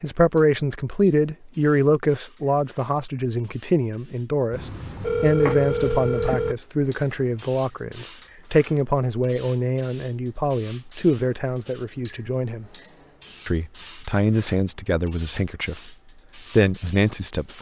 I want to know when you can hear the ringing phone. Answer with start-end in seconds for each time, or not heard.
4.5-6.5.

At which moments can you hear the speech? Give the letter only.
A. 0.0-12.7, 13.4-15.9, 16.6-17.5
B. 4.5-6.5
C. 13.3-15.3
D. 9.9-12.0
A.